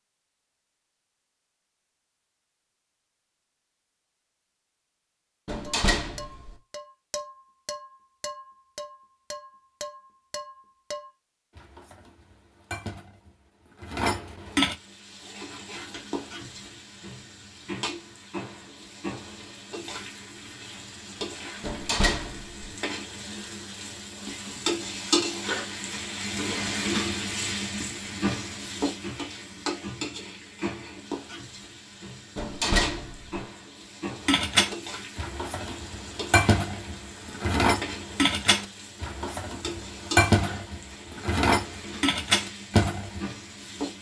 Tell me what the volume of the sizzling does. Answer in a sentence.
The volume of the sizzling goes up, then down.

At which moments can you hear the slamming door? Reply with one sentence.
You can hear the slamming door from 5.5 to 6.5 s, from 21.6 to 22.7 s and from 32.4 to 33.4 s.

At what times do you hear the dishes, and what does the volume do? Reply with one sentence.
You can hear the dishes from 5.6 to 14.8 s, getting quieter then louder; and from 34.2 to 43.2 s, getting louder.